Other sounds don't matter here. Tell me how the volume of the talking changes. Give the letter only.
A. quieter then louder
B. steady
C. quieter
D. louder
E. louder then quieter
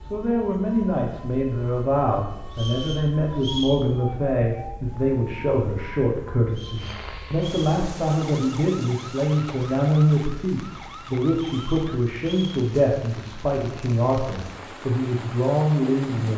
B.